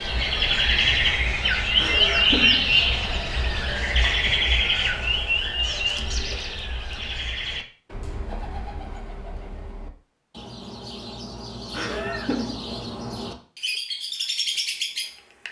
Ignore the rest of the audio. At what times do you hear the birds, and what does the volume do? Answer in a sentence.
The birds can be heard from 0.0 to 15.4 s, getting quieter then louder.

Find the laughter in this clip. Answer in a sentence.
You can hear the laughter from 1.8 to 2.6 s and from 11.7 to 12.6 s.